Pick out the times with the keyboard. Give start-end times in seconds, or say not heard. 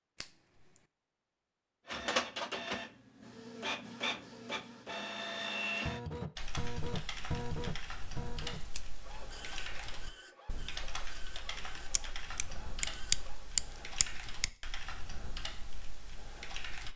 6.3-16.9.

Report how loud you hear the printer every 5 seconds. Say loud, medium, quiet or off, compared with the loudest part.
loud, loud, quiet, off.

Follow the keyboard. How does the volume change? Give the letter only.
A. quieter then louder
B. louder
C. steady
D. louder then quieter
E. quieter
C.